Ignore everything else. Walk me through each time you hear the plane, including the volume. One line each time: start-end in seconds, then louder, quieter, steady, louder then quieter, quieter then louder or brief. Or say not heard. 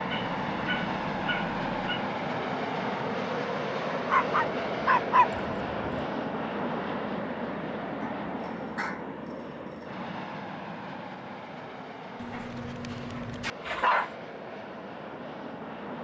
0.0-15.9 quieter.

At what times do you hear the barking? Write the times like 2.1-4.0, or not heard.
0.1-2.0, 4.0-6.0, 8.0-9.9, 12.2-14.2.